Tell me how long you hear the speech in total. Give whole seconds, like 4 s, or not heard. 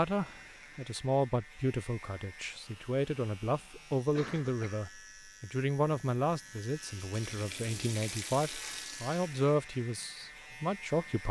11 s.